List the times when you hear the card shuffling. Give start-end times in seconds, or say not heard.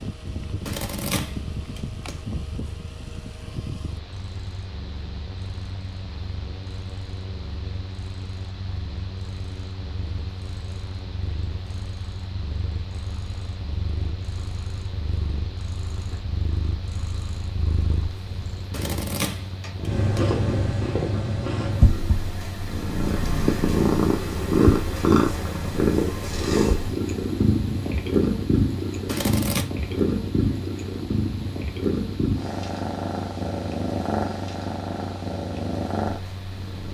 0.7-2.2, 18.7-20.2, 29.1-29.7.